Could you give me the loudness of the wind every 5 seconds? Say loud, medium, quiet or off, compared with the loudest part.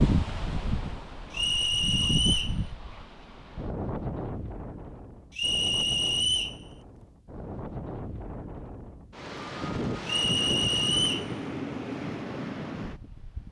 loud, medium, loud.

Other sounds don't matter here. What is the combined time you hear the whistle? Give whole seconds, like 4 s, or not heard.
4 s.